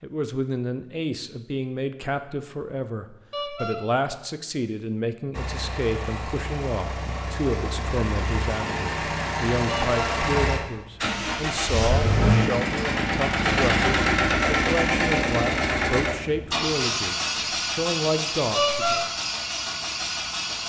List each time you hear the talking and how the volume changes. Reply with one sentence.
You can hear the talking from 0.0 to 19.1 s, at a steady volume.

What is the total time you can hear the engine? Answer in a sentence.
You can hear the engine for 15 seconds altogether.